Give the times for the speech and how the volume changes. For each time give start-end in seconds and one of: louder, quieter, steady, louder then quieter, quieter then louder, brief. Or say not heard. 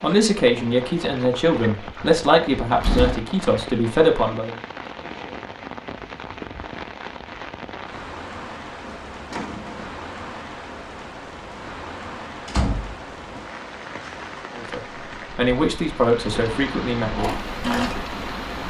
0.0-4.5 steady
14.5-17.4 brief.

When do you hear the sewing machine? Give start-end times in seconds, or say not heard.
17.1-18.6.